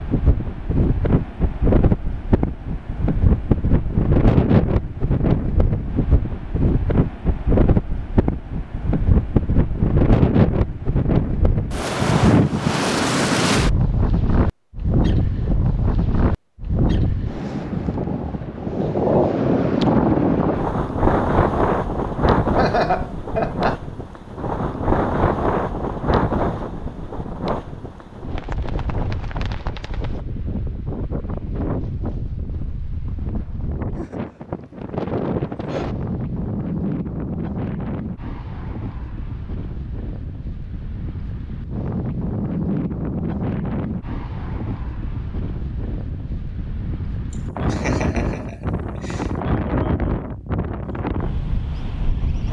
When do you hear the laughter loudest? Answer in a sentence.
The loudest moment of the laughter is at 23 seconds.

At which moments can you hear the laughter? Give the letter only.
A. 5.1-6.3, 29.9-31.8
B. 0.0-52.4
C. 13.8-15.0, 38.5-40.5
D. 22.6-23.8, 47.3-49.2
D.